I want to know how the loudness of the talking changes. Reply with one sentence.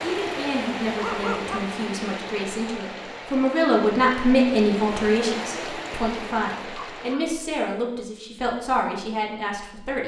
The volume of the talking goes up, then down.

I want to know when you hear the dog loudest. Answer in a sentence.
The loudest moment of the dog is at 1 second.